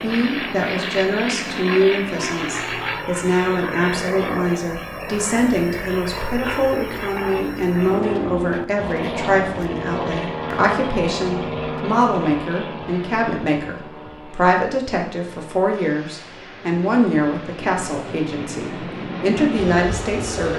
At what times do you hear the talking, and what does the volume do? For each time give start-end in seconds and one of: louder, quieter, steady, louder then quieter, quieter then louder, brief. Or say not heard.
0.0-20.5 steady.